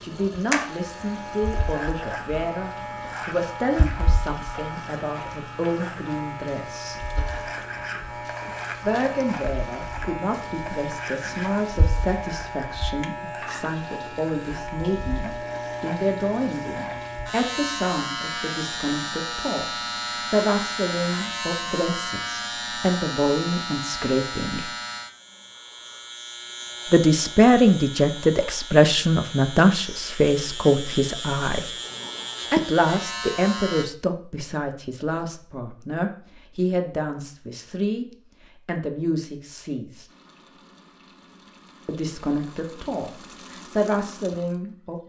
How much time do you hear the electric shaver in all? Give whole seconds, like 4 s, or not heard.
34 s.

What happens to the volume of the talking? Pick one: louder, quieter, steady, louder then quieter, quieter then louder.
louder then quieter.